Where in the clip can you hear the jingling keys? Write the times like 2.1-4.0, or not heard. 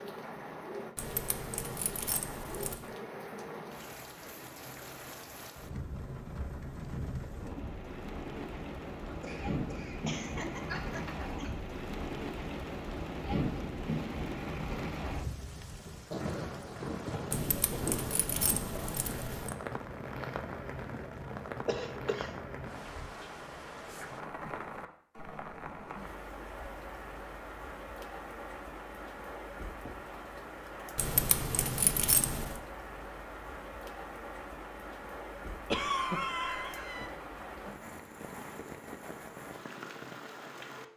0.9-2.9, 17.3-19.6, 30.9-32.6.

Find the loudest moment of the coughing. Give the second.
36 s.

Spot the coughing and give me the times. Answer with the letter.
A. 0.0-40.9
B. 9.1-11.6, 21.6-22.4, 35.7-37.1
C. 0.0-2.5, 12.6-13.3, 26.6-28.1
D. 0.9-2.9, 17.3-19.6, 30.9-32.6
B.